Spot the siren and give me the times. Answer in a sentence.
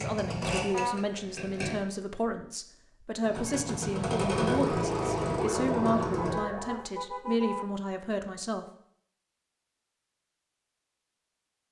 You can hear the siren from 4.3 to 6.9 s.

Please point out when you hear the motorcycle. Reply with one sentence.
The motorcycle can be heard from 0.0 to 1.8 s and from 3.2 to 6.4 s.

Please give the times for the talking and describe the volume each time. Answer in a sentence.
The talking can be heard from 0.0 to 8.7 s, at a steady volume.